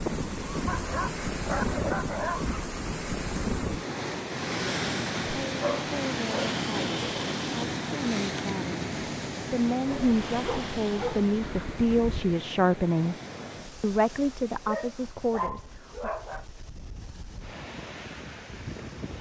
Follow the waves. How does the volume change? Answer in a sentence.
The volume of the waves goes down.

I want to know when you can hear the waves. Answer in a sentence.
You can hear the waves from 0.0 to 19.1 s.